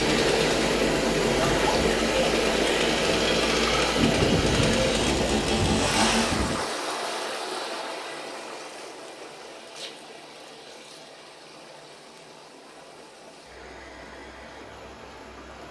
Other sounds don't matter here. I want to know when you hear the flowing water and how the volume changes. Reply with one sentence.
The flowing water can be heard from 0.0 to 15.6 s, getting quieter.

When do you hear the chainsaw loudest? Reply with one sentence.
The volume of the chainsaw peaks at 6 seconds.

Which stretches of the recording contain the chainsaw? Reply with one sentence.
The chainsaw can be heard from 0.0 to 6.4 s.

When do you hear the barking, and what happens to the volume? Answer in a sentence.
The barking can't be heard in this clip.